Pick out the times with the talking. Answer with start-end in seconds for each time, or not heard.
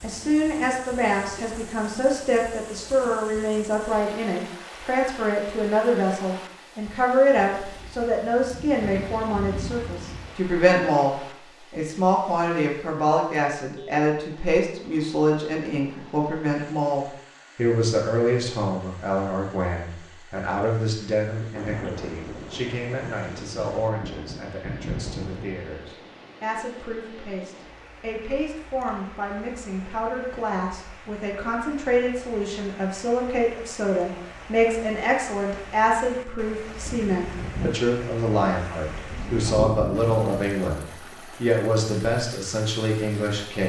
0.0-43.6.